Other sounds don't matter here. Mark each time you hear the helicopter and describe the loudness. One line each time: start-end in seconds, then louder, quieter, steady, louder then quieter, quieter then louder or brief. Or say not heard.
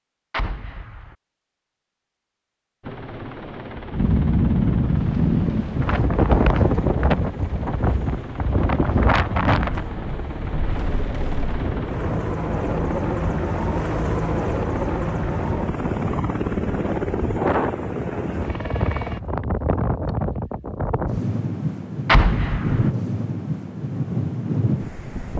2.8-19.2 louder.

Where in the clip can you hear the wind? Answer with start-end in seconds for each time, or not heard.
3.9-25.3.